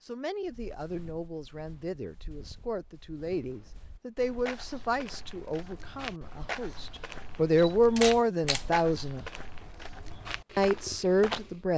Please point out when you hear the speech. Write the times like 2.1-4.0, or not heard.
0.0-9.2, 10.6-11.7.